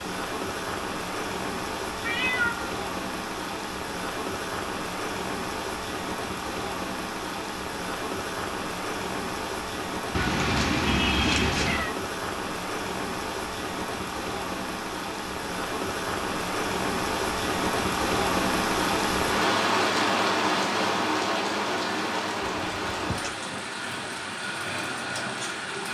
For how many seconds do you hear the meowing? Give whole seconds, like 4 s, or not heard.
3 s.